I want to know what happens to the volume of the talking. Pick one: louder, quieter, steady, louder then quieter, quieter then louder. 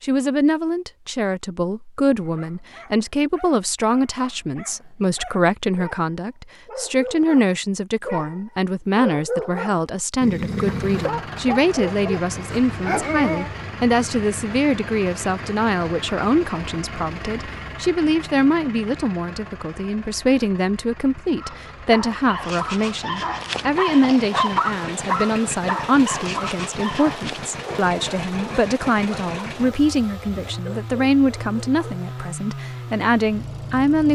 steady.